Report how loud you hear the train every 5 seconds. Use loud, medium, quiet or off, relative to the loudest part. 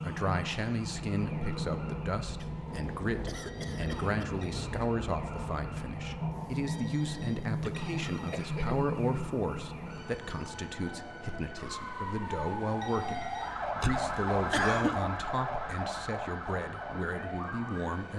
loud, loud, medium, medium.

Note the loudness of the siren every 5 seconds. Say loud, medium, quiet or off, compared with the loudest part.
quiet, quiet, loud, loud.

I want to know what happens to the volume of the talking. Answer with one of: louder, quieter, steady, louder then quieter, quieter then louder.
steady.